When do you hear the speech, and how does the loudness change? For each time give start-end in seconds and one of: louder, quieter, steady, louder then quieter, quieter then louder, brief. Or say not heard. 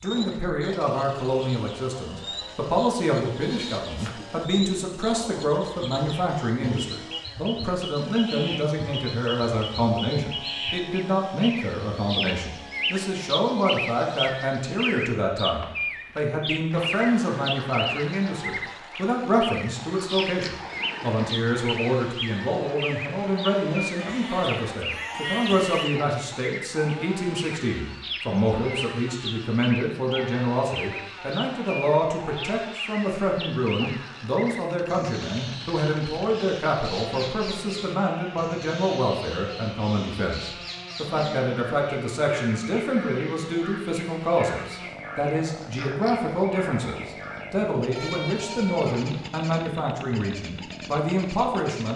0.0-51.9 steady.